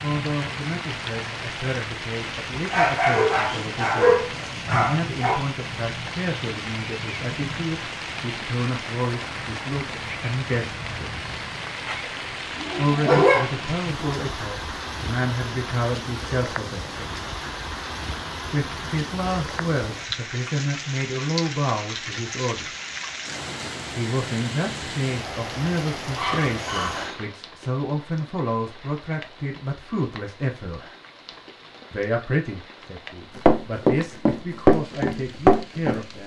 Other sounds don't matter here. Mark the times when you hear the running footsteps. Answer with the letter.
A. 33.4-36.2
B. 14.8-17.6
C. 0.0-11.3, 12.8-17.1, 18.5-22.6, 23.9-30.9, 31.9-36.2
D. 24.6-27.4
A.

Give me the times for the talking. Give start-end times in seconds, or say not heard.
0.0-11.3, 12.8-17.1, 18.5-22.6, 23.9-30.9, 31.9-36.2.